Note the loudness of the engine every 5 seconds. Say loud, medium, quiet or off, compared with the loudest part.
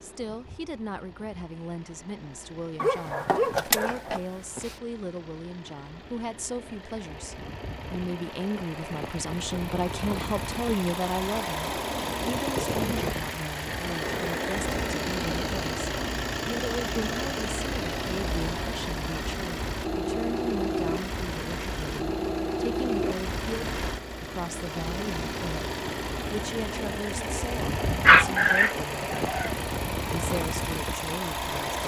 quiet, medium, loud, loud, loud, loud, loud.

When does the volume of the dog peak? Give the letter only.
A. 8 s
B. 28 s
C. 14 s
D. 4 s
B.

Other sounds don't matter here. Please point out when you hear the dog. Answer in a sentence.
You can hear the dog from 2.8 to 4.8 s and from 28.0 to 29.5 s.